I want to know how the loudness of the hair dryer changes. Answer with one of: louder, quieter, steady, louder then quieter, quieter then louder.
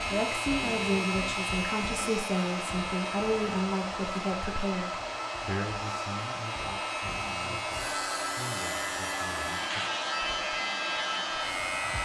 steady.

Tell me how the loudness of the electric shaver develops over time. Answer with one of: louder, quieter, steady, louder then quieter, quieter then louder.
quieter then louder.